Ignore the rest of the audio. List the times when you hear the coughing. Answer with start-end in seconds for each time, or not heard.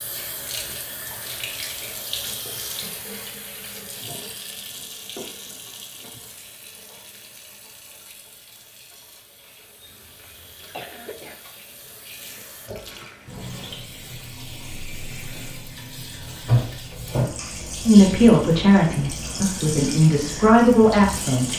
9.8-11.3.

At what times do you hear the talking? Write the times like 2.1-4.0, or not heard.
17.9-21.5.